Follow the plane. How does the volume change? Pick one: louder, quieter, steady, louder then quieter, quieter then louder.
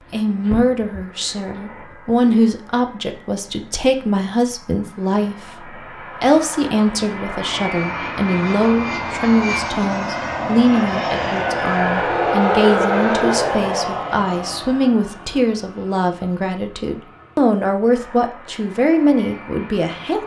louder then quieter.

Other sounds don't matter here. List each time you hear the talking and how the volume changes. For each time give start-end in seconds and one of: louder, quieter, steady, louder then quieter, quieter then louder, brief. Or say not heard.
0.1-20.2 steady.